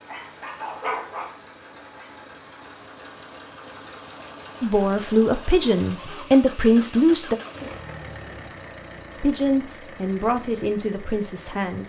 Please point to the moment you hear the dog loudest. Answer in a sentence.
The volume of the dog peaks at 1 second.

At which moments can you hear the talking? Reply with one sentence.
The talking can be heard from 4.6 to 7.3 s and from 9.2 to 11.8 s.